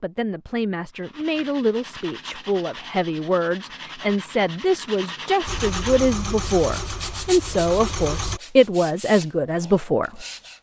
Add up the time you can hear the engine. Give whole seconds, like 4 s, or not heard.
3 s.